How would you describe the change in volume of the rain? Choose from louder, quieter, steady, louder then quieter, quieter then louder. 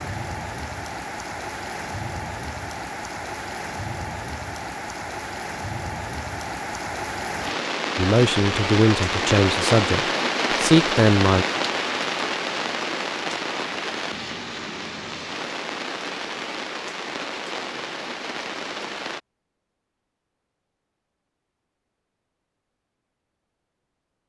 louder then quieter.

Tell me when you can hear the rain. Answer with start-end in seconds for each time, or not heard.
0.0-19.2.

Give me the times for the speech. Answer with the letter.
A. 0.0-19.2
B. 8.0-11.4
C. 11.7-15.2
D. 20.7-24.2
B.